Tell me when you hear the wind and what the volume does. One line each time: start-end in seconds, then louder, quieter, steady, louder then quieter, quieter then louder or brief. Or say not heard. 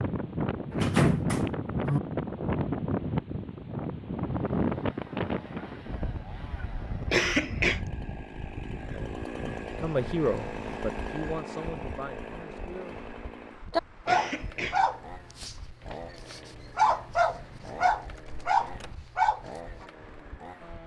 0.0-20.8 quieter.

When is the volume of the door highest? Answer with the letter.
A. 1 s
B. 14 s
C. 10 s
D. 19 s
A.